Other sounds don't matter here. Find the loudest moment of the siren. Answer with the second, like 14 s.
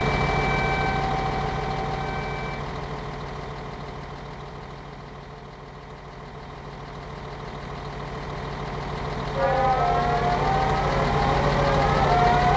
12 s.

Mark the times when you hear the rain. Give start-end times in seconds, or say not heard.
not heard.